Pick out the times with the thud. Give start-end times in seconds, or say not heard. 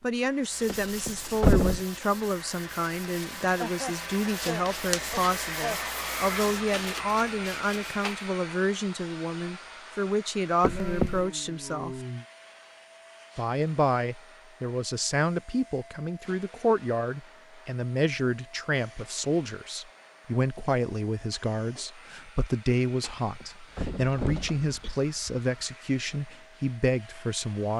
0.7-1.9, 10.6-11.2, 23.0-25.4.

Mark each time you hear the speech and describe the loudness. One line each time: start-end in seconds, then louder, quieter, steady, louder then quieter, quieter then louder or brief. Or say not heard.
0.0-12.0 steady
13.3-27.7 steady.